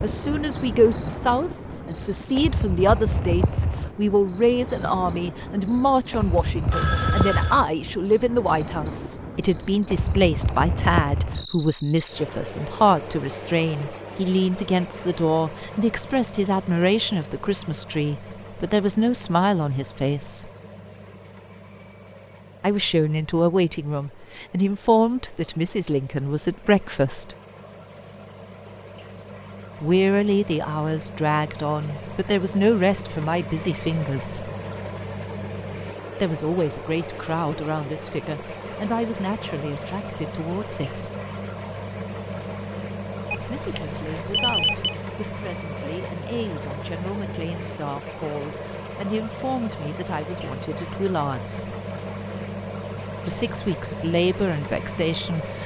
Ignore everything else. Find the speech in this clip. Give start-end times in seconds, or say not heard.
0.0-20.5, 22.6-27.4, 29.8-34.5, 36.2-41.0, 43.5-51.8, 53.2-55.6.